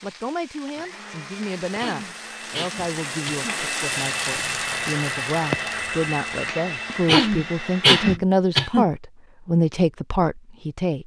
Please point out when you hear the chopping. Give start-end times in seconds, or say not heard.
not heard.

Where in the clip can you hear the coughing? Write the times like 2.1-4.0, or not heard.
1.8-3.4, 7.0-8.9.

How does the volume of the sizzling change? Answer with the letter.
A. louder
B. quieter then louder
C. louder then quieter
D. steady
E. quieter
A.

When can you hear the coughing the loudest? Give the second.
8 s.